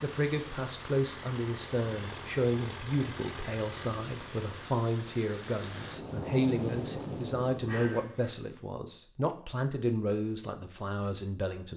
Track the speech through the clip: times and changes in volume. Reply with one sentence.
The speech can be heard from 0.0 to 11.7 s, at a steady volume.